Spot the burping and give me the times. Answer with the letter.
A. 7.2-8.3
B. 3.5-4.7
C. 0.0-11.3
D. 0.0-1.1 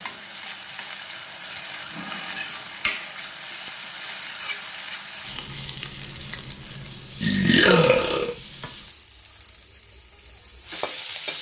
A.